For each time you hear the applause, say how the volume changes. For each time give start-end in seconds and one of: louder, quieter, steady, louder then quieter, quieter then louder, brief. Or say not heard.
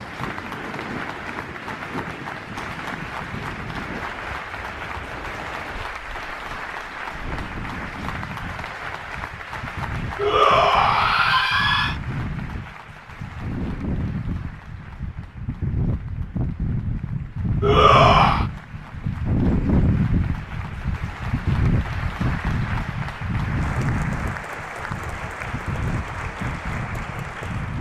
0.0-27.7 quieter then louder.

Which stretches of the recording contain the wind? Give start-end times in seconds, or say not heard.
0.0-27.7.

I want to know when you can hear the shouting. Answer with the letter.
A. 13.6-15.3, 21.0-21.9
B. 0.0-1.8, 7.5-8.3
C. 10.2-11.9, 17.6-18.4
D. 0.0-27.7
C.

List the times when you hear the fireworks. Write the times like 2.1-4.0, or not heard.
not heard.